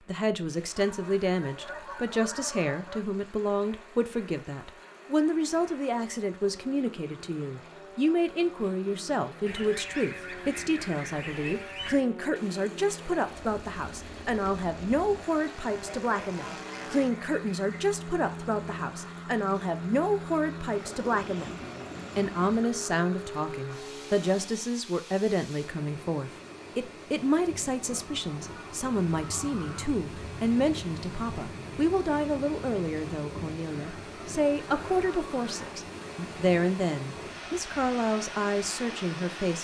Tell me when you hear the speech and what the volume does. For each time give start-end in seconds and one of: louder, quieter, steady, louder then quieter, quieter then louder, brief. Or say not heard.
0.1-21.6 steady
22.1-39.5 steady.